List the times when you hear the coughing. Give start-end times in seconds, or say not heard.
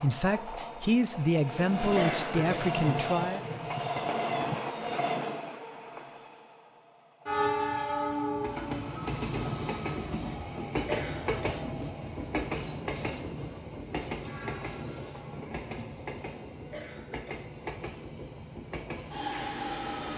1.9-2.6, 10.8-11.6, 16.7-17.4.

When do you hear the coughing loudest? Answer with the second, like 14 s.
2 s.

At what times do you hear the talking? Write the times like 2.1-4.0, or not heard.
0.0-3.4.